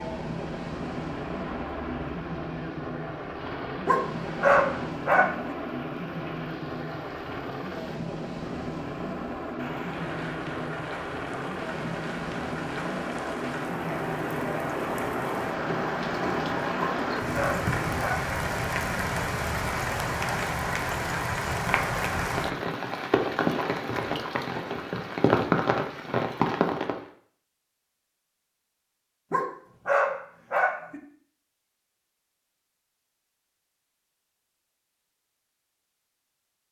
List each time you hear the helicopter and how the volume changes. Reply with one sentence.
The helicopter can be heard from 0.0 to 18.1 s, at a steady volume.